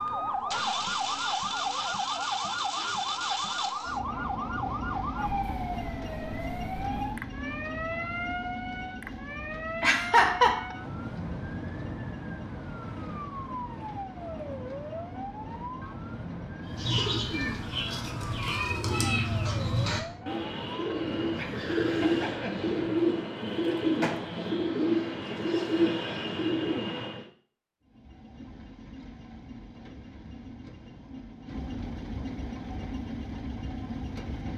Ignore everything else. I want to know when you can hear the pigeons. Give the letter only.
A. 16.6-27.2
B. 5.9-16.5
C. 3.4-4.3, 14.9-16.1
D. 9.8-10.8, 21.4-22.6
A.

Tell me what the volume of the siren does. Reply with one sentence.
The loudness of the siren goes down.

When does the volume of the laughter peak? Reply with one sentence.
The volume of the laughter peaks at 10 seconds.